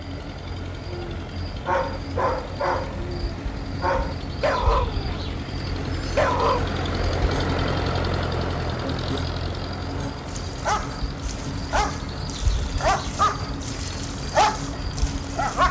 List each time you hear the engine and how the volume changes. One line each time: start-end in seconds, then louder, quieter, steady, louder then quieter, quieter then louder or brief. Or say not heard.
0.0-15.6 louder then quieter.